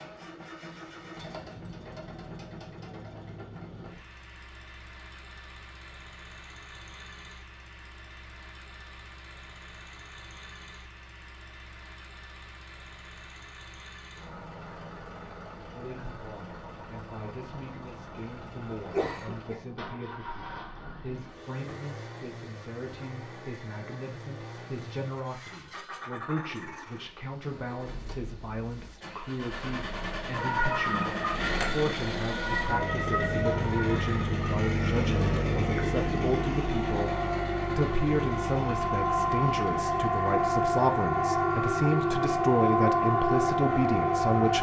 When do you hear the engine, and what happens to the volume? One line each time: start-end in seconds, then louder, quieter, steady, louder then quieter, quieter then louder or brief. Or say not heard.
0.0-44.5 louder.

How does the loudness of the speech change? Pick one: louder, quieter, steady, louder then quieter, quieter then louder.
louder.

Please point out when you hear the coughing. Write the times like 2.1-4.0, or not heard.
18.9-19.6.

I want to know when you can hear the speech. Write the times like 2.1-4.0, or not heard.
15.7-44.5.